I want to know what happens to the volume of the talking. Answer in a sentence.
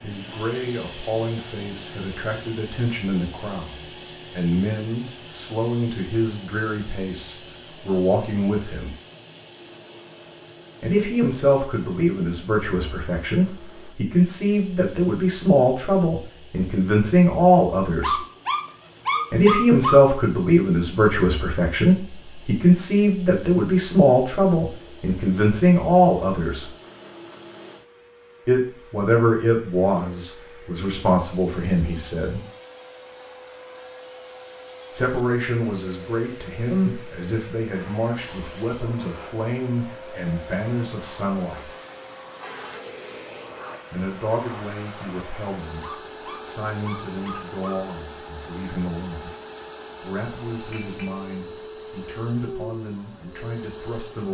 The volume of the talking goes up, then down.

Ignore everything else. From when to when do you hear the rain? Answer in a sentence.
The rain can't be heard in this clip.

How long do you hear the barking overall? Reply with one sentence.
The barking can be heard for 4 seconds in total.